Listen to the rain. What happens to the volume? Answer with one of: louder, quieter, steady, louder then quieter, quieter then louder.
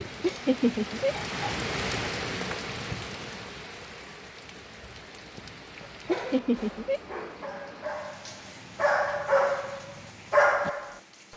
quieter.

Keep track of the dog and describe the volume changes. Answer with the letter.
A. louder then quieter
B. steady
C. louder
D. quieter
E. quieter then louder
C.